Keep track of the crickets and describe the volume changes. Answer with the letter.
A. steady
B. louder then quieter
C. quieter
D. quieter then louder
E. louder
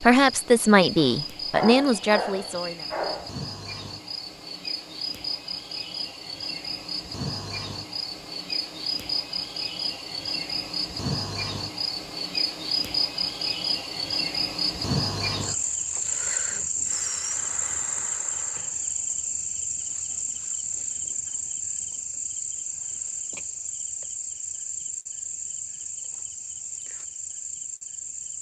B.